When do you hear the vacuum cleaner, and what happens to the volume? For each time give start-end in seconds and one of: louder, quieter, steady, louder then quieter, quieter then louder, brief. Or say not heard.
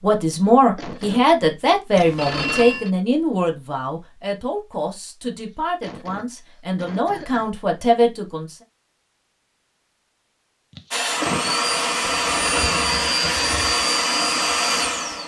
10.9-15.2 steady.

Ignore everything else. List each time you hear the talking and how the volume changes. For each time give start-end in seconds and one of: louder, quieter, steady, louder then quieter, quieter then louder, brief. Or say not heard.
0.0-8.6 quieter then louder.